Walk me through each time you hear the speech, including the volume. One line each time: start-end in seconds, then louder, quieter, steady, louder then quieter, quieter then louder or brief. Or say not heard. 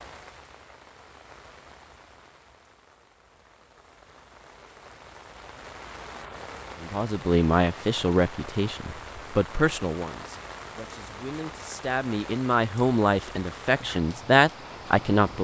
6.8-15.4 quieter then louder.